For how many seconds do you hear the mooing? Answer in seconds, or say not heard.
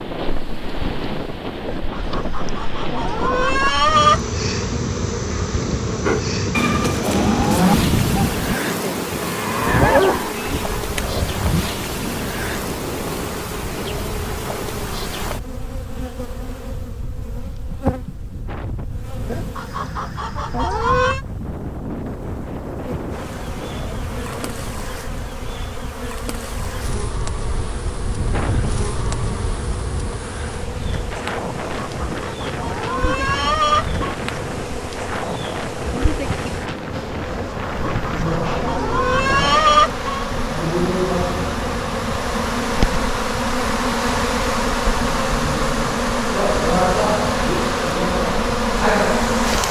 6 s.